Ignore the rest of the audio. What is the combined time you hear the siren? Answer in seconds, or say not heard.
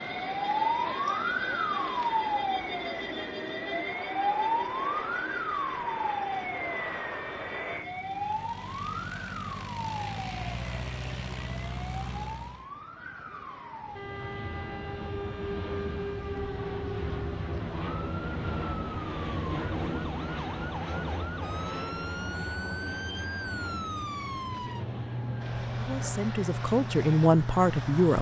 28 s.